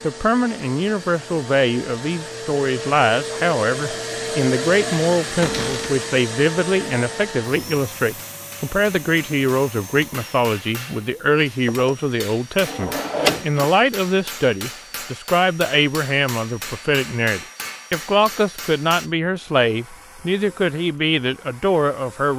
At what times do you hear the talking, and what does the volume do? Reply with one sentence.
You can hear the talking from 0.0 to 22.3 s, at a steady volume.